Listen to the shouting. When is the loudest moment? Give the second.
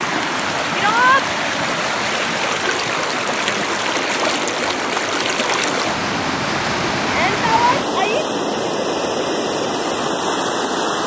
1 s.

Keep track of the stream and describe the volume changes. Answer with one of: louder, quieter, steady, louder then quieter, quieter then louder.
steady.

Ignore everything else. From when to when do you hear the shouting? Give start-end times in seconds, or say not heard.
0.7-1.2, 7.0-8.2.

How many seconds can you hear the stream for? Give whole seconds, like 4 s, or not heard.
11 s.